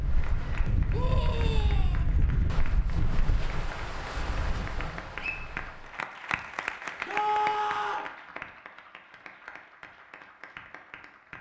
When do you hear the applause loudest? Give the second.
7 s.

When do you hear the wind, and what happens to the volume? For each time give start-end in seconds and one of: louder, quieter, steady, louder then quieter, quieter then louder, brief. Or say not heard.
0.0-5.9 quieter.